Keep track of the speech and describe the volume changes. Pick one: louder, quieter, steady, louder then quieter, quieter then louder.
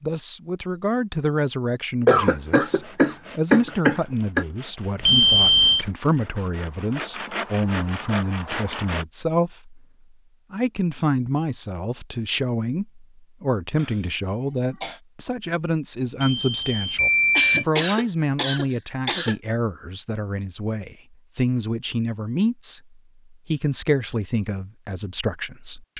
steady.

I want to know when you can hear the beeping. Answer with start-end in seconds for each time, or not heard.
5.0-5.8, 16.2-17.6.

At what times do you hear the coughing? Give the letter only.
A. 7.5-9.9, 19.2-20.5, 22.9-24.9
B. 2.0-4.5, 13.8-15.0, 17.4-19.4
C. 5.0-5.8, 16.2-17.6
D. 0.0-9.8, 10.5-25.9
B.